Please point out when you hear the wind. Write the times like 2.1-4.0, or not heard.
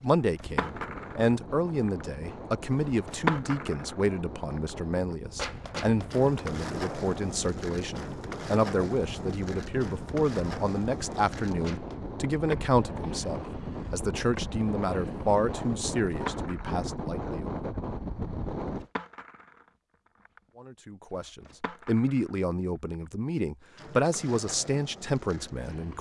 0.2-18.9.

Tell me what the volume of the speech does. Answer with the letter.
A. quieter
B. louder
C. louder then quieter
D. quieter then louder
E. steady
E.